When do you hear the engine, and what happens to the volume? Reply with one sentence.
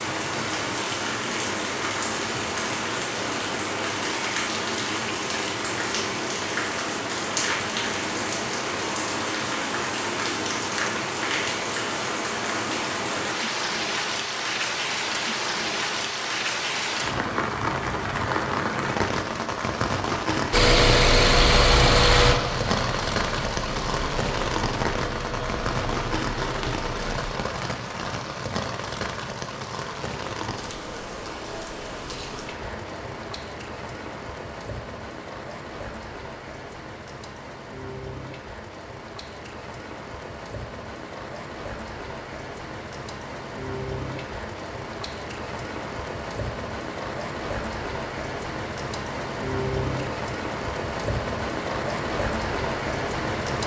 The engine can be heard from 20.5 to 27.4 s, getting quieter.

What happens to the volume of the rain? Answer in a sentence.
The loudness of the rain goes down, then up.